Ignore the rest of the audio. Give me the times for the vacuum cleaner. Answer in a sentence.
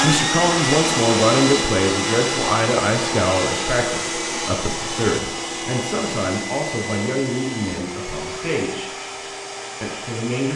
You can hear the vacuum cleaner from 0.0 to 10.5 s.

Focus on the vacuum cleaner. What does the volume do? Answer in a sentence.
The loudness of the vacuum cleaner goes down.